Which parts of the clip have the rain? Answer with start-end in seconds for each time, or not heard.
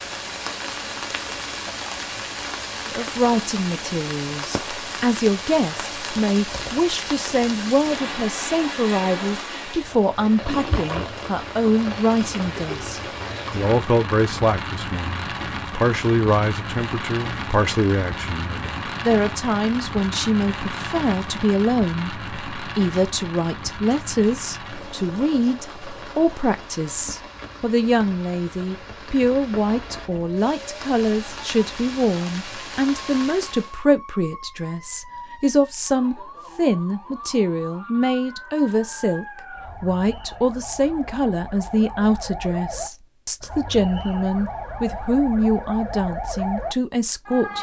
0.0-33.8.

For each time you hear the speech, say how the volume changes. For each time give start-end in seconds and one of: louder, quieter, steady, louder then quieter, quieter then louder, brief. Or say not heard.
2.9-47.5 steady.